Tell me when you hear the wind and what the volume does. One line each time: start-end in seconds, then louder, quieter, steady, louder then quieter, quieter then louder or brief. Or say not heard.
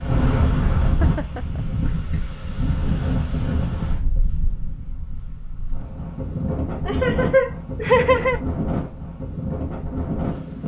0.0-10.6 quieter then louder.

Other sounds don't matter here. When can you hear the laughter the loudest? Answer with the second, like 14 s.
8 s.